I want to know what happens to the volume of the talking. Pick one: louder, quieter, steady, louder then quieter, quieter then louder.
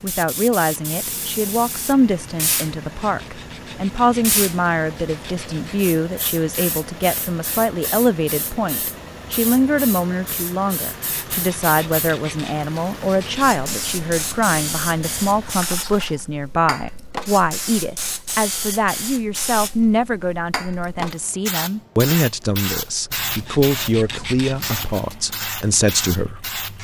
steady.